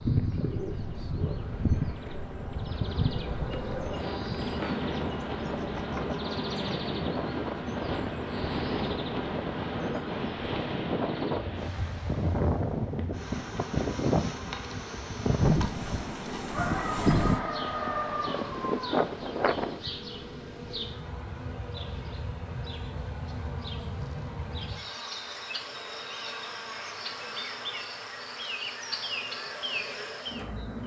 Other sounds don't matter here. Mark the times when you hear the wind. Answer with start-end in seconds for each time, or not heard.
0.0-19.8.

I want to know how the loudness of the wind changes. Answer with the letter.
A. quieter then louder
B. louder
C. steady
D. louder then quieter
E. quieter
B.